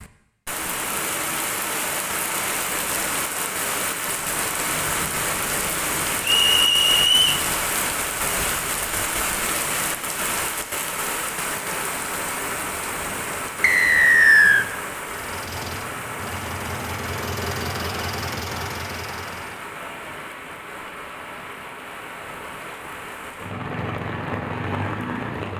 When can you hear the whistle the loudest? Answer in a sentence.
The volume of the whistle peaks at 14 seconds.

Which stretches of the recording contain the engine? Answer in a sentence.
You can hear the engine from 15.1 to 19.7 s.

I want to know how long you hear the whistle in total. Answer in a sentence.
You can hear the whistle for 2 seconds altogether.